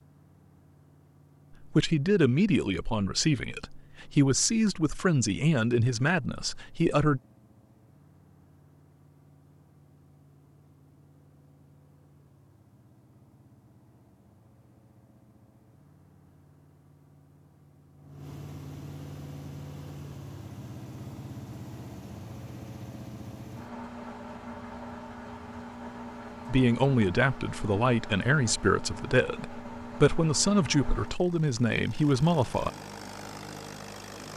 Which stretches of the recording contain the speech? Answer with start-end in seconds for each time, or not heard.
1.6-7.2, 26.4-32.7.